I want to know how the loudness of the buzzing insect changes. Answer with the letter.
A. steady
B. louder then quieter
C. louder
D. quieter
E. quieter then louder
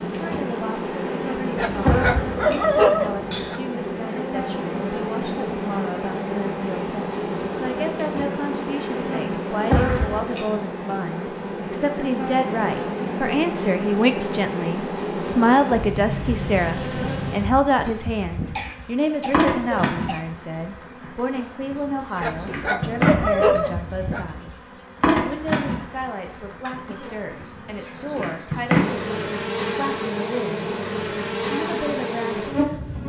A.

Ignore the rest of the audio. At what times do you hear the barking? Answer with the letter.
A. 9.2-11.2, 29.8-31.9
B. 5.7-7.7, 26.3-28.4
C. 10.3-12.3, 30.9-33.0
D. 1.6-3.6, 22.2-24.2
D.